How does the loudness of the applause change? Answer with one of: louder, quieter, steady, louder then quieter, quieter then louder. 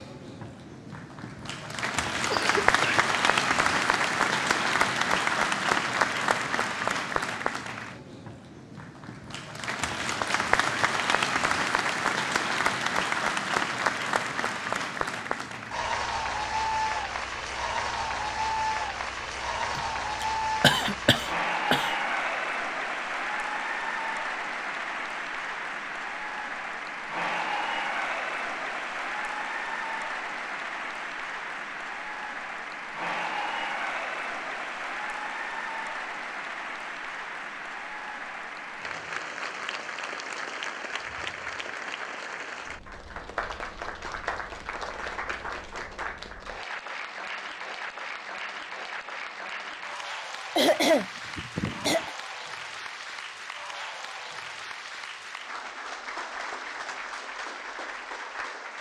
quieter.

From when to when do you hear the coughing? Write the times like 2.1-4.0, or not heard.
2.3-3.0, 19.8-21.9, 50.5-52.1.